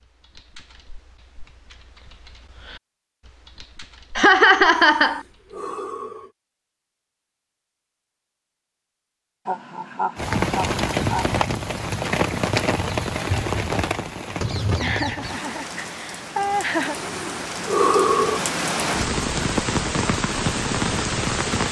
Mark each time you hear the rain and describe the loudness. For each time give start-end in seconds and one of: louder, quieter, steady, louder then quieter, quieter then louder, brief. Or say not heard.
10.2-21.6 quieter then louder.